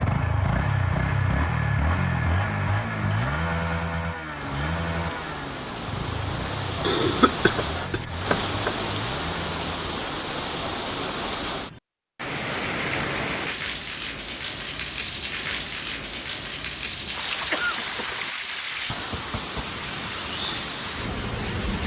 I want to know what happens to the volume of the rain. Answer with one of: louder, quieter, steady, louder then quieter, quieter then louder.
louder.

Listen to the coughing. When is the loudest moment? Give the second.
7 s.